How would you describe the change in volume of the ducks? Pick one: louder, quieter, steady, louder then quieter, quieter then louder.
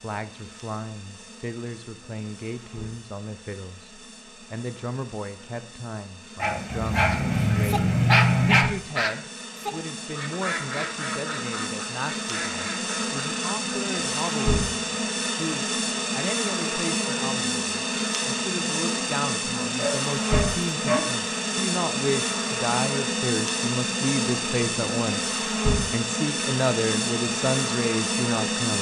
quieter.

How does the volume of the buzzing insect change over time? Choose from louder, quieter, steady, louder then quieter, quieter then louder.
louder.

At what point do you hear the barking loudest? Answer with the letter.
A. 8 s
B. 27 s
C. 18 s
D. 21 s
A.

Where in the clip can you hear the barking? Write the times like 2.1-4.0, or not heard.
6.4-8.7, 19.8-21.0.